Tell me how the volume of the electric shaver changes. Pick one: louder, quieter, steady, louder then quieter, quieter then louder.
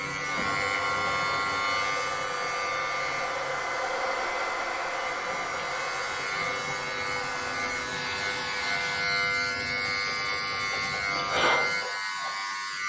quieter then louder.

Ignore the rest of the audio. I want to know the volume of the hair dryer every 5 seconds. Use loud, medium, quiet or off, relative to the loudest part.
loud, loud, off.